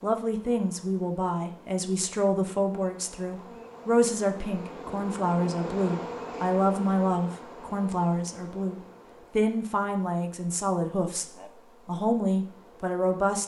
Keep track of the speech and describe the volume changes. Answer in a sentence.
The volume of the speech stays about the same.